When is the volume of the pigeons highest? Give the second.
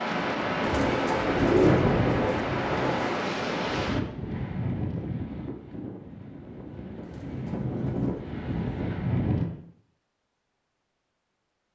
2 s.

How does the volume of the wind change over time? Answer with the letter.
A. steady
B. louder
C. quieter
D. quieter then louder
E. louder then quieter
D.